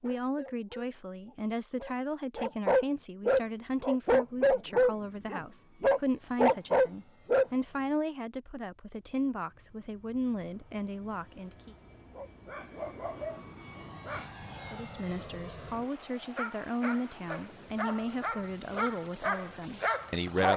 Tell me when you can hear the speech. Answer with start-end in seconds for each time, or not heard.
0.0-11.8, 14.7-20.5.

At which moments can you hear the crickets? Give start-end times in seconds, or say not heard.
not heard.